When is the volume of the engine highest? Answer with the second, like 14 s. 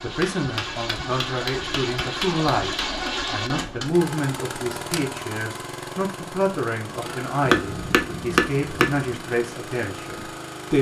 3 s.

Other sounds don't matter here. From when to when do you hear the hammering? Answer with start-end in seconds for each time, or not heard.
0.2-3.1, 7.4-9.1.